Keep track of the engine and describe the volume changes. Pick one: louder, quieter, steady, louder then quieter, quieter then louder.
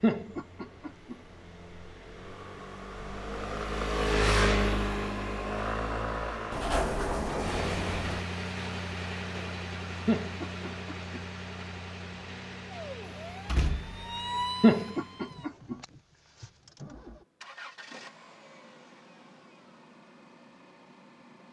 quieter.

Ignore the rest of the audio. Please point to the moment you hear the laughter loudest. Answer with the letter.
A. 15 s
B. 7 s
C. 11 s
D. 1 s
A.